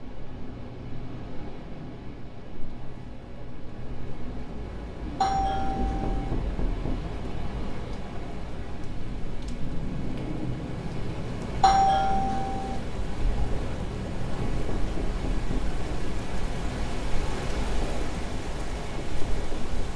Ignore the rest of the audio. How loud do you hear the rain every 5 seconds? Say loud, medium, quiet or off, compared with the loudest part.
medium, loud, loud, loud.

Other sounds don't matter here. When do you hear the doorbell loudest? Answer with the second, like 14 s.
12 s.